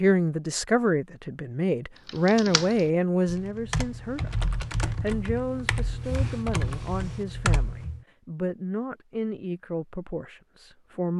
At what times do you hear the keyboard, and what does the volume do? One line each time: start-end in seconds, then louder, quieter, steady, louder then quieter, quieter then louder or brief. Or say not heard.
2.0-8.1 louder.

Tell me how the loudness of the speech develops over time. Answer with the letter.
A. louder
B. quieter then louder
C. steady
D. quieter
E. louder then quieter
D.